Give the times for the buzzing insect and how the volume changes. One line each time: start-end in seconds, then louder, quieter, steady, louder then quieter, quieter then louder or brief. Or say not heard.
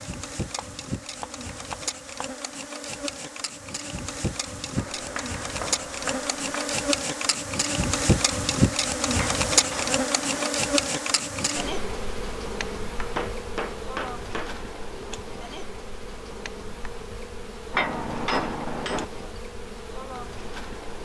0.0-21.0 louder then quieter.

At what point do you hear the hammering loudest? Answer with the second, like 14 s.
18 s.